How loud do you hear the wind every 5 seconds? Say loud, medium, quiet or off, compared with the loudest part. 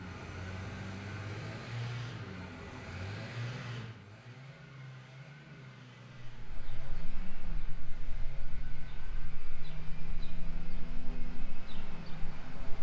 off, medium, loud.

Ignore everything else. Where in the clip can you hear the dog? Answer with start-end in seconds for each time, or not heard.
not heard.